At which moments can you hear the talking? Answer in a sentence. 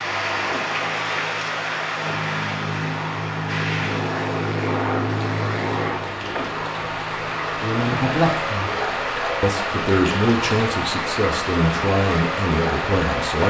You can hear the talking from 7.6 to 8.7 s and from 9.4 to 13.4 s.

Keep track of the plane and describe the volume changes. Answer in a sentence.
The volume of the plane goes up, then down.